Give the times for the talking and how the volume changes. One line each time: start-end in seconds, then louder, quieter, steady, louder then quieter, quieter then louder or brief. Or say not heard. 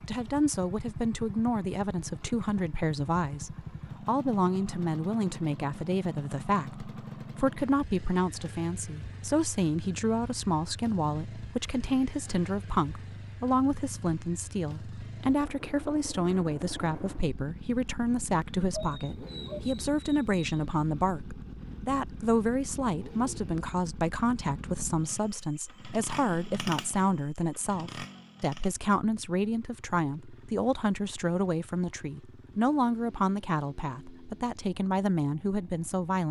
0.1-36.2 steady.